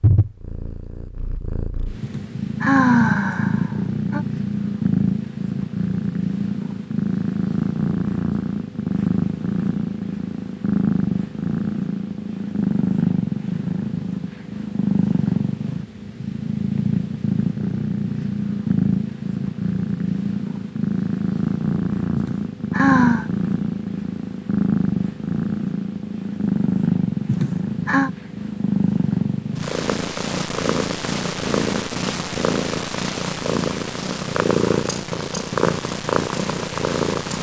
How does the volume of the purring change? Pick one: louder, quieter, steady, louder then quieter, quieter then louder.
steady.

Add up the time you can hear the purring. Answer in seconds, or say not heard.
37 s.